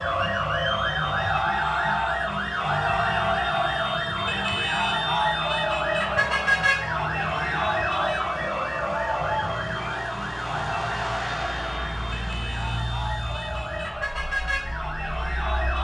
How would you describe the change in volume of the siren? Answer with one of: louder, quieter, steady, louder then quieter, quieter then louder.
quieter.